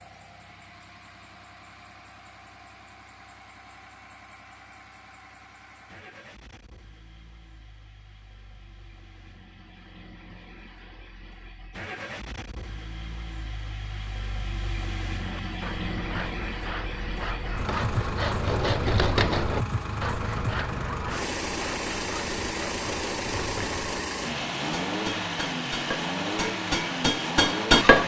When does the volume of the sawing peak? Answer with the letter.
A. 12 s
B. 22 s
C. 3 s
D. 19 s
D.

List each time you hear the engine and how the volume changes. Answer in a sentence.
You can hear the engine from 0.0 to 28.0 s, getting louder.